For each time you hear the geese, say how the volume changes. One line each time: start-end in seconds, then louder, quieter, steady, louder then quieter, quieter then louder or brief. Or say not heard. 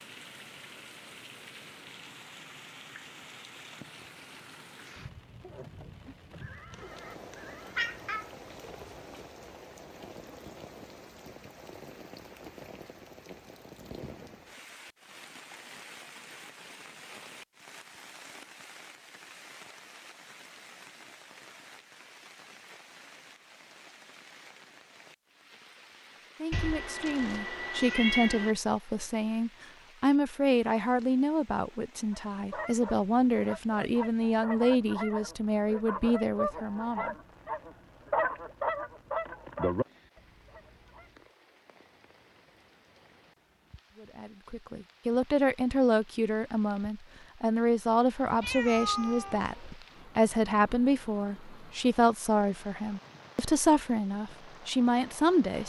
32.1-39.9 louder
40.5-41.0 brief.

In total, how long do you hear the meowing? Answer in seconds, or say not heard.
6 s.